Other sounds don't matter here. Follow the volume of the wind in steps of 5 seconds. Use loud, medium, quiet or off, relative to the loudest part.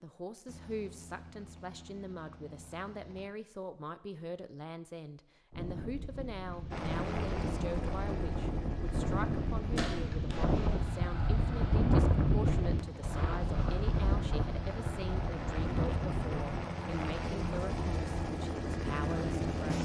off, medium, loud, medium.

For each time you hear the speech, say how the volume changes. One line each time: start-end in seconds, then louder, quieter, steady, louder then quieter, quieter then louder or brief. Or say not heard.
0.0-19.8 steady.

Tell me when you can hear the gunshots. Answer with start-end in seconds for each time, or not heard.
9.8-10.2.